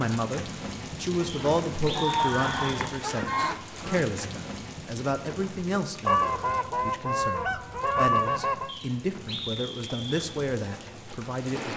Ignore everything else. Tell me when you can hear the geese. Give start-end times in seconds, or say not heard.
1.4-4.0, 6.0-8.7.